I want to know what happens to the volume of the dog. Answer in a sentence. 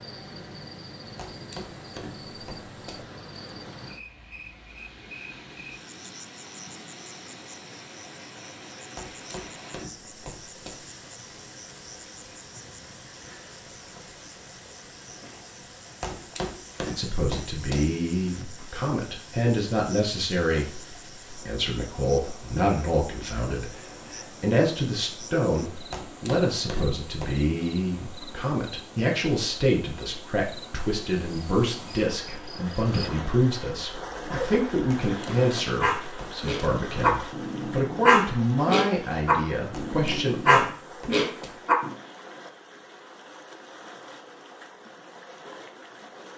The loudness of the dog goes up.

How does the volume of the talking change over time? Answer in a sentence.
The loudness of the talking stays about the same.